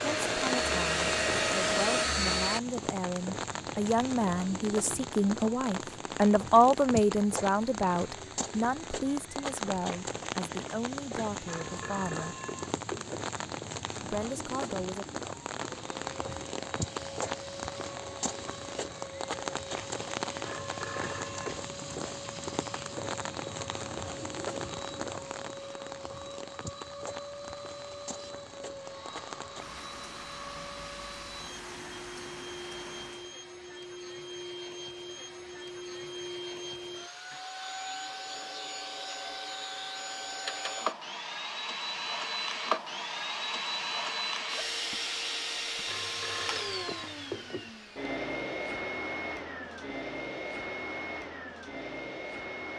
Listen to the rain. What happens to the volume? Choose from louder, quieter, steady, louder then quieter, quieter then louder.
quieter.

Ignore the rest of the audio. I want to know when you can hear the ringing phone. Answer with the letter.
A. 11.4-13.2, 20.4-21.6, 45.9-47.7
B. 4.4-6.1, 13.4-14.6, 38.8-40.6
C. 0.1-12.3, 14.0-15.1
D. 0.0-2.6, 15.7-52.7
A.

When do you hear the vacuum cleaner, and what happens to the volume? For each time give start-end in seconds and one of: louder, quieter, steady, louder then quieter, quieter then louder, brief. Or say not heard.
0.0-2.6 brief
15.7-52.7 louder.